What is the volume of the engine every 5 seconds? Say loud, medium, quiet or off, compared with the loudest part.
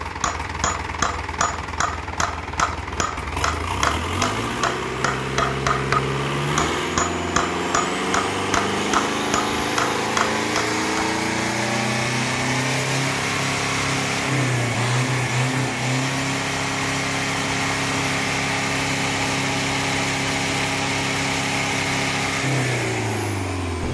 medium, loud, loud, loud, loud.